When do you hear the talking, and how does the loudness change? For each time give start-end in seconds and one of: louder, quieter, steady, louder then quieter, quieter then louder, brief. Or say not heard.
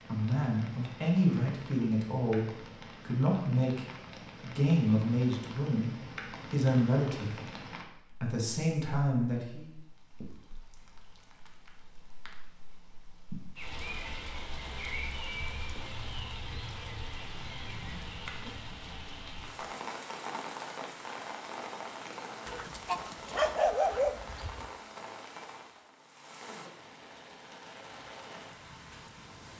0.1-9.7 steady.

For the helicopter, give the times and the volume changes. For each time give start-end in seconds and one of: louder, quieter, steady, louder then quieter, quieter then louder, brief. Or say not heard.
not heard.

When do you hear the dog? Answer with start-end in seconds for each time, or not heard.
22.4-24.7.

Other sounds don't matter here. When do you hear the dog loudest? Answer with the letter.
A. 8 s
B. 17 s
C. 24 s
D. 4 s
C.